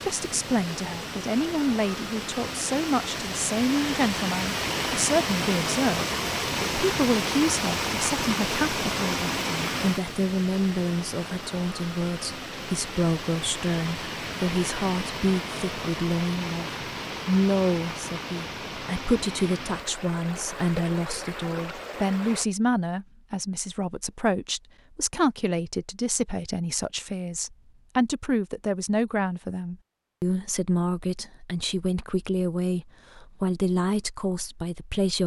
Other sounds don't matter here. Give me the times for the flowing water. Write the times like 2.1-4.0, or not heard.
0.0-22.4.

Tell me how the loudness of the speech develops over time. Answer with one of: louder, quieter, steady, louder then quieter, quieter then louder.
steady.